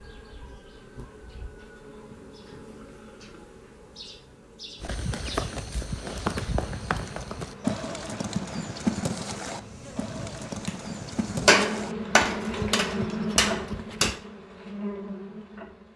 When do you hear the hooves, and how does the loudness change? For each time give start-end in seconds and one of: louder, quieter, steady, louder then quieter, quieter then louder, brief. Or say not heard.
4.8-14.2 quieter.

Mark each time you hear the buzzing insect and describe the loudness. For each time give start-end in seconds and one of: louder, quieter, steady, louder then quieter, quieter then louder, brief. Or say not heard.
0.0-15.9 louder.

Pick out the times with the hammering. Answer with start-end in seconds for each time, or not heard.
11.4-14.2.